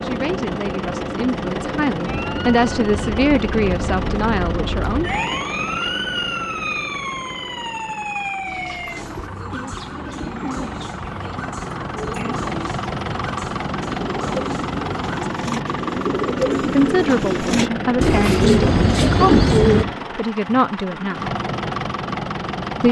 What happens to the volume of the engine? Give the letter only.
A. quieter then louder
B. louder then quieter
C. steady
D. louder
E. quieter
A.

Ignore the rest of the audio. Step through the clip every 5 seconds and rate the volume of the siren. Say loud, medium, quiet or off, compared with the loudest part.
medium, loud, medium, off, off.